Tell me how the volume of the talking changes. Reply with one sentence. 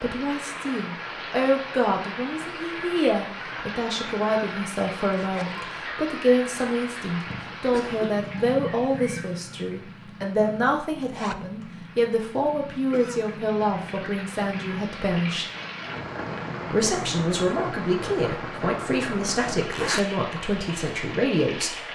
The volume of the talking stays about the same.